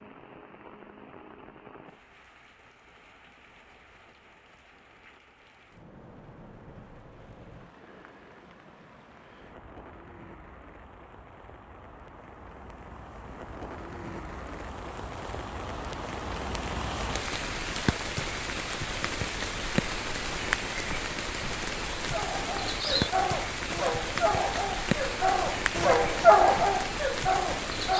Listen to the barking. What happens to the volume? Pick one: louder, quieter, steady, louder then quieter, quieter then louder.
louder then quieter.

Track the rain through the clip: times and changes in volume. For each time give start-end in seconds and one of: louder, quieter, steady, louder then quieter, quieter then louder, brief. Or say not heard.
0.0-27.9 louder.